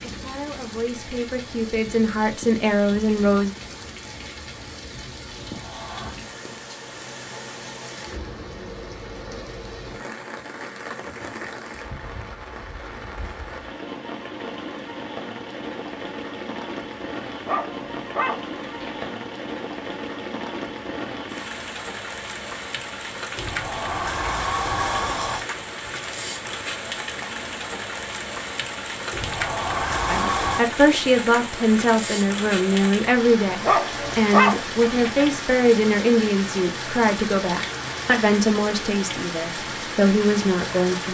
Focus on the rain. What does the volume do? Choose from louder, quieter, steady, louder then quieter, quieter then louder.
louder.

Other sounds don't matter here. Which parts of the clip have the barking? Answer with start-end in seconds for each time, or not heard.
17.4-19.1, 33.6-35.2.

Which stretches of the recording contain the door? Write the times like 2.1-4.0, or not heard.
5.3-6.2, 23.4-25.4, 29.1-30.6.